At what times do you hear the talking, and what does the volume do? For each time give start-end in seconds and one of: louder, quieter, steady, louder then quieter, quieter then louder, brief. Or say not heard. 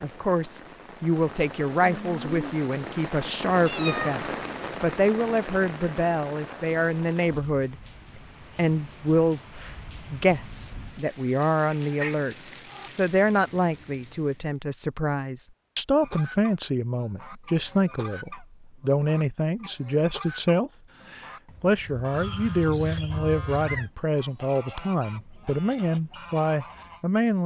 0.0-27.4 steady.